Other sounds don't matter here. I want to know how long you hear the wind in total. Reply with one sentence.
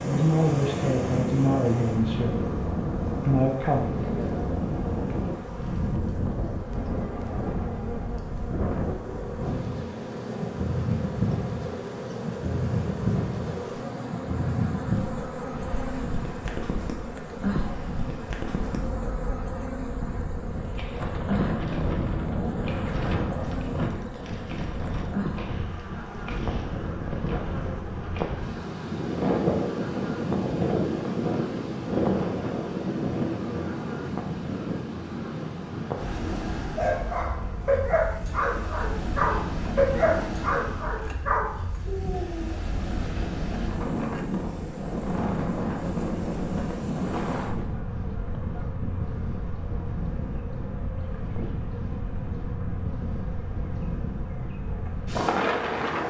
You can hear the wind for 56 seconds altogether.